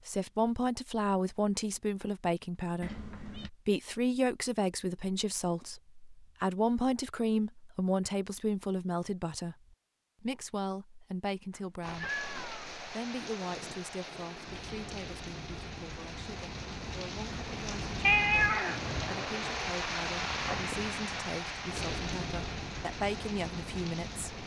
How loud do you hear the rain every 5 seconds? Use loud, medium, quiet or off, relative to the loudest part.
off, off, medium, loud, loud.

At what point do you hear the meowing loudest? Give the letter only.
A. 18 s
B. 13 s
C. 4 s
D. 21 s
A.